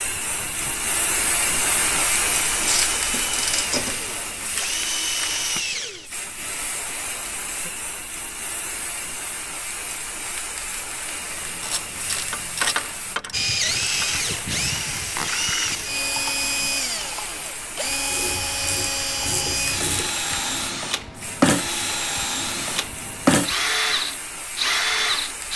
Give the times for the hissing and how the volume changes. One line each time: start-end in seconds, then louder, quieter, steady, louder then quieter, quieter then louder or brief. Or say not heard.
0.0-25.5 quieter.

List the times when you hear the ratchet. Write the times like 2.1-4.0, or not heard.
2.6-4.0, 11.3-14.1, 18.1-20.1.